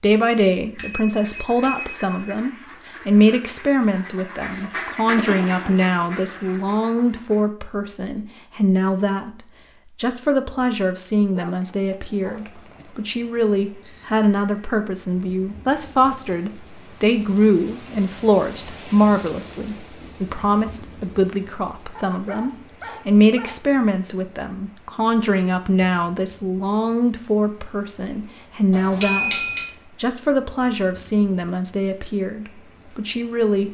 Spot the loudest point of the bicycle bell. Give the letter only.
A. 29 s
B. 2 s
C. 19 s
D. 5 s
A.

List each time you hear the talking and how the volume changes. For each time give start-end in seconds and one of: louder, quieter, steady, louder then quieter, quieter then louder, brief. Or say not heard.
0.0-33.7 steady.